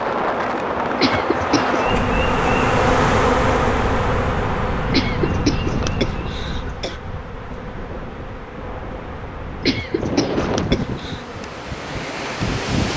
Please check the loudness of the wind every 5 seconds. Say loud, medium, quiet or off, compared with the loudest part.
loud, medium, loud.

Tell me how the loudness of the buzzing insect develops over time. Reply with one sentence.
The volume of the buzzing insect goes down.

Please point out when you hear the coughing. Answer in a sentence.
You can hear the coughing from 0.9 to 1.8 s, from 4.9 to 7.0 s and from 9.6 to 11.2 s.